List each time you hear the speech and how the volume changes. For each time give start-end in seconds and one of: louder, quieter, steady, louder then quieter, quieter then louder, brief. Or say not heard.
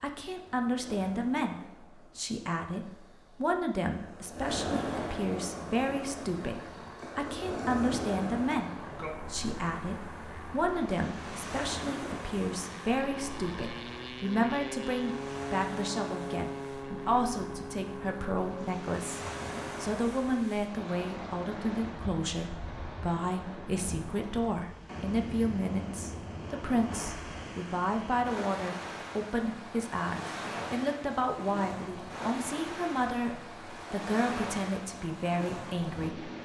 0.0-19.2 steady
19.8-36.3 steady.